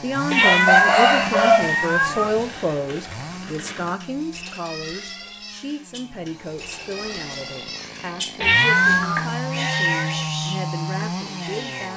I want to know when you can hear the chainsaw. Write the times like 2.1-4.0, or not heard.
0.0-11.9.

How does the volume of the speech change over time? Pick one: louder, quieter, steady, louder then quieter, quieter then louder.
quieter.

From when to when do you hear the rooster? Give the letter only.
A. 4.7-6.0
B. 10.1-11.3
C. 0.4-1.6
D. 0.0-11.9
C.